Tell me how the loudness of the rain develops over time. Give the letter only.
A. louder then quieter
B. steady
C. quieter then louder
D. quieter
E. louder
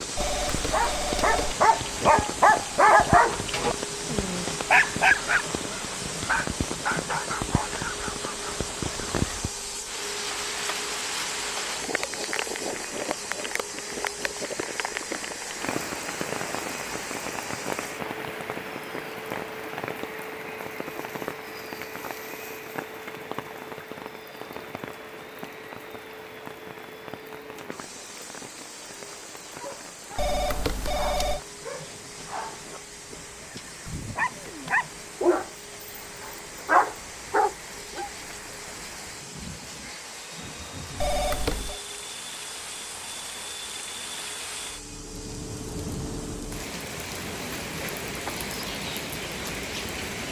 C.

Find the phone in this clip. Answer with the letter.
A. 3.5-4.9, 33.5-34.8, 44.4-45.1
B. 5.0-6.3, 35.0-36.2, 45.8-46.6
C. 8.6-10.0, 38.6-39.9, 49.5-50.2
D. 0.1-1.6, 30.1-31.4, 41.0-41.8
D.